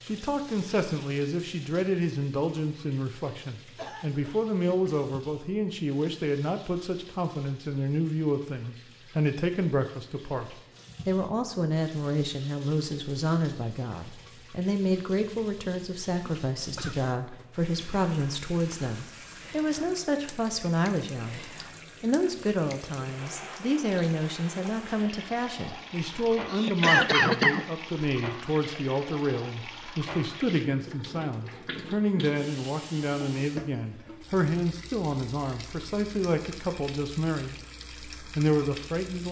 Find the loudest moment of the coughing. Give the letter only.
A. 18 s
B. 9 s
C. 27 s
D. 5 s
C.